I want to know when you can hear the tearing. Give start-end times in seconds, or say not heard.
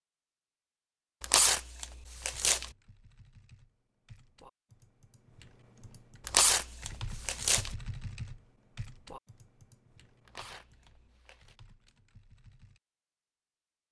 1.2-2.7, 6.2-7.8, 10.2-11.6.